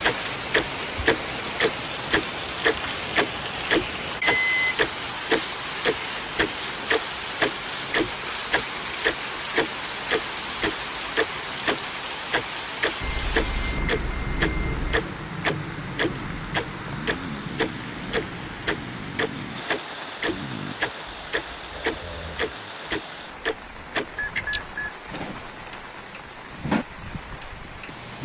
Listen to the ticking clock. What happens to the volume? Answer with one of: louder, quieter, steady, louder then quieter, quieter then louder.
quieter.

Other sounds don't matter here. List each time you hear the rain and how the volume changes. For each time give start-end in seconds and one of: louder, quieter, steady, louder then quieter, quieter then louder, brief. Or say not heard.
0.0-28.2 quieter.